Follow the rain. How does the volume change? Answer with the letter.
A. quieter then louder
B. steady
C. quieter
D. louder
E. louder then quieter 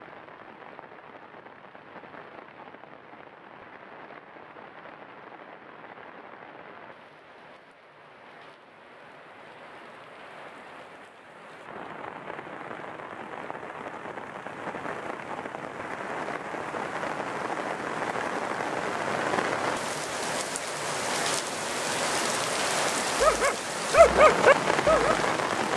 D.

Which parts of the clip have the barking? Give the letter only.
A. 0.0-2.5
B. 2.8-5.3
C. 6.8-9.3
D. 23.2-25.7
D.